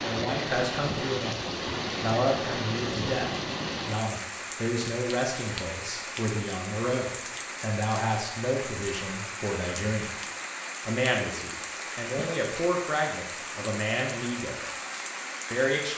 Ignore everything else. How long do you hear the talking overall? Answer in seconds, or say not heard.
14 s.